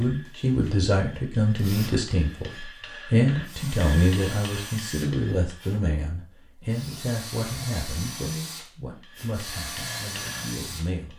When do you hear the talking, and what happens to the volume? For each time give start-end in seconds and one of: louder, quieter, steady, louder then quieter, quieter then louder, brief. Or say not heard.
0.0-11.1 quieter.